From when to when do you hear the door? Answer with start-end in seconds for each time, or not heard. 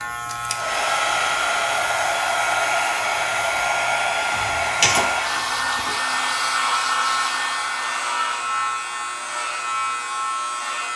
not heard.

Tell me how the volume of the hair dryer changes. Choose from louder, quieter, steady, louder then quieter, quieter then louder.
quieter.